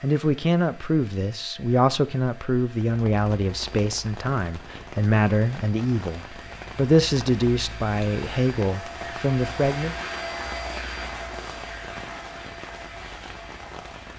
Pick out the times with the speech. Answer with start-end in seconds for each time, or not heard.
0.0-9.9.